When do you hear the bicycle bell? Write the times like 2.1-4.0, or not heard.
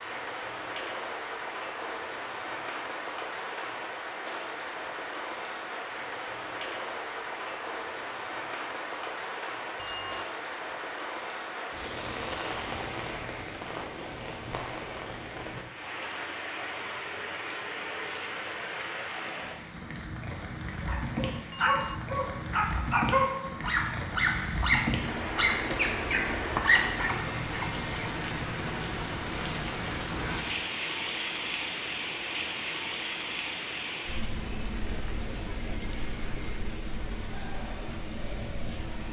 9.8-10.2, 21.5-21.9.